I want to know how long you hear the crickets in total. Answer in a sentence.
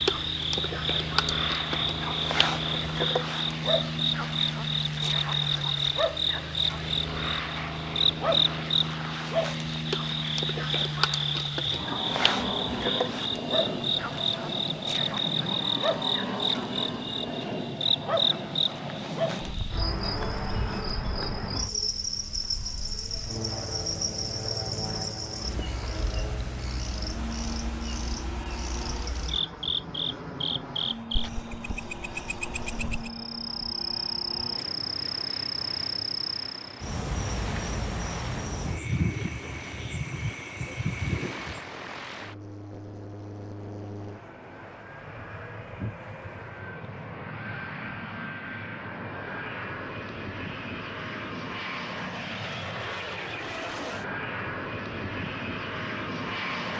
The crickets can be heard for 42 seconds in total.